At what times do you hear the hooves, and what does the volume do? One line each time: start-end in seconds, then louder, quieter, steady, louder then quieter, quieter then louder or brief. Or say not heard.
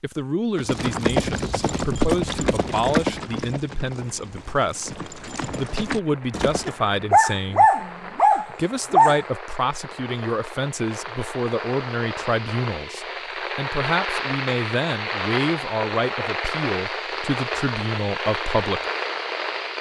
0.6-6.8 quieter then louder.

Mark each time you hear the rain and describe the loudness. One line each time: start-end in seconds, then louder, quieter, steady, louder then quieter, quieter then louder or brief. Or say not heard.
4.0-19.7 louder.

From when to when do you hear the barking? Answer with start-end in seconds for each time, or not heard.
6.7-9.2.